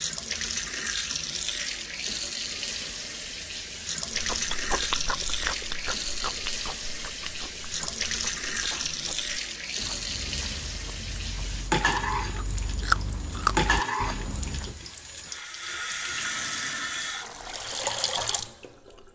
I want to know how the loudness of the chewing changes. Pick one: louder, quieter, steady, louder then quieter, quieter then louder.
quieter then louder.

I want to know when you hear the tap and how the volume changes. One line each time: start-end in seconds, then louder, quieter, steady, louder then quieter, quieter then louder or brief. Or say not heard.
0.0-19.1 steady.